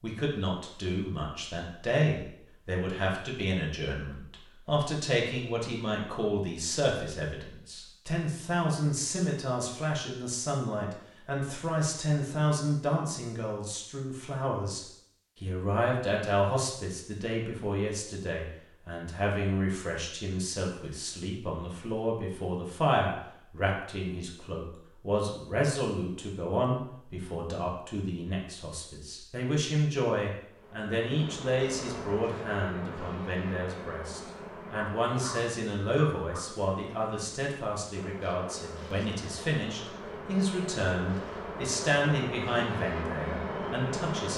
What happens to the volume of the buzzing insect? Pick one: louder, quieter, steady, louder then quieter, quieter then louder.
quieter then louder.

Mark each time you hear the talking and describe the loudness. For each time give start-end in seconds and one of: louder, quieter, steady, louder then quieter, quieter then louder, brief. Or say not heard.
0.0-44.3 steady.